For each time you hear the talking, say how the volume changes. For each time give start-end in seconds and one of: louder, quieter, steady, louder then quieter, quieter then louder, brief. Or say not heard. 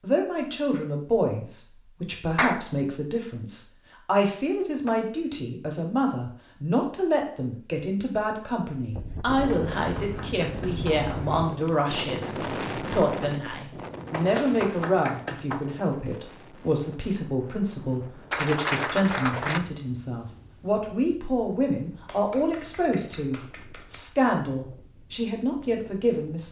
0.0-26.4 steady.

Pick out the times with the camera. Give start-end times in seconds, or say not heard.
not heard.